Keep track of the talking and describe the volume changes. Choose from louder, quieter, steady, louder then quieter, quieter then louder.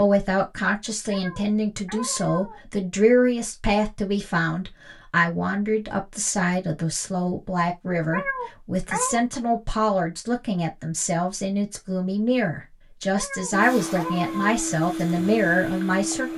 steady.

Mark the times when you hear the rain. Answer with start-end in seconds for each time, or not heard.
not heard.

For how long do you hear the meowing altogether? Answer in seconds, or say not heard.
4 s.